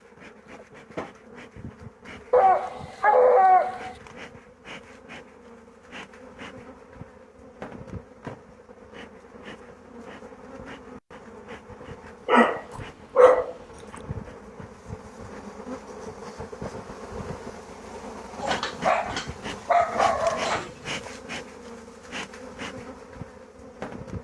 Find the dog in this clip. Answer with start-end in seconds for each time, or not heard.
2.3-4.0, 12.2-13.5, 18.4-21.1.